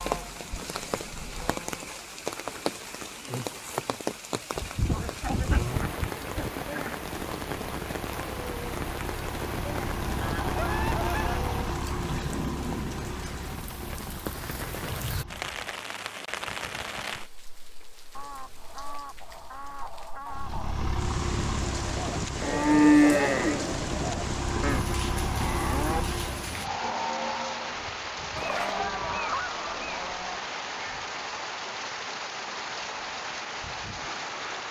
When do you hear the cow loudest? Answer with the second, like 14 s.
23 s.